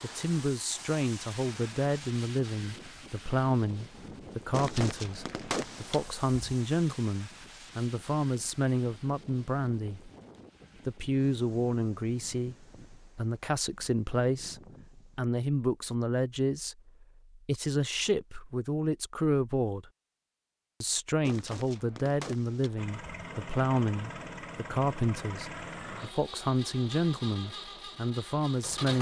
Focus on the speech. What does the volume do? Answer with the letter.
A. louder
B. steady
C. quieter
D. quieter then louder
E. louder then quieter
B.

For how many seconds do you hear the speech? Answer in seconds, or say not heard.
27 s.